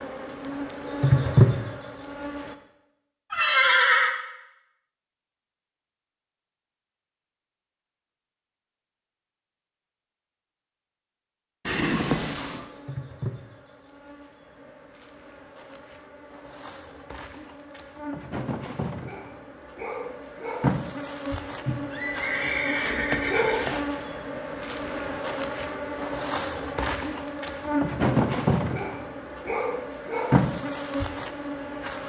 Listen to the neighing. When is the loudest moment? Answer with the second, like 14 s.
4 s.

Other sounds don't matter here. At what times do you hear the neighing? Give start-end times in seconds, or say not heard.
3.3-4.2, 11.7-12.7, 21.6-23.6.